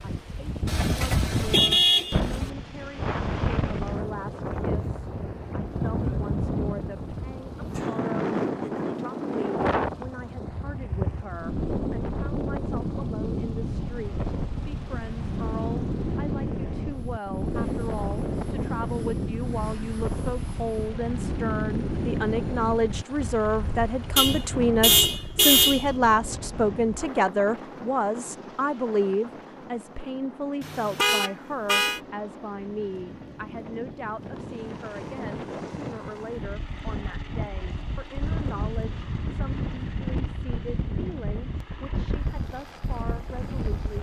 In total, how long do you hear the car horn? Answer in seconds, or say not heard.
5 s.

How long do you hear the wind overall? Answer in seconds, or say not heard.
44 s.